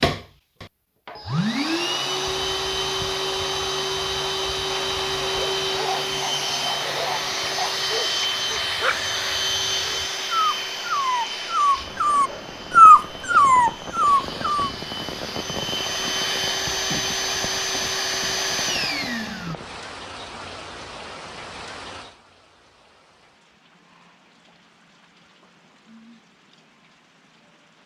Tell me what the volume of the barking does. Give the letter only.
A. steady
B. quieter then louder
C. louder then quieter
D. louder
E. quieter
D.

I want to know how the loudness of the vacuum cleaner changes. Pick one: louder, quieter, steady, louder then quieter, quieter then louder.
quieter then louder.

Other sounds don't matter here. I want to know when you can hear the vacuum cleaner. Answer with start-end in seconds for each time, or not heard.
0.0-19.6.